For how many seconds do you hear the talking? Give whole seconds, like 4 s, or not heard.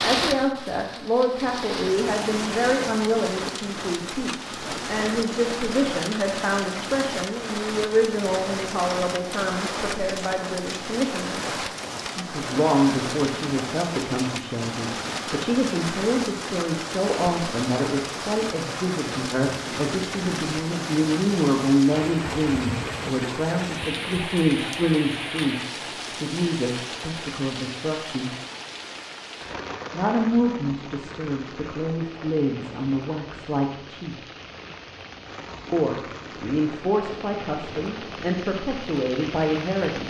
36 s.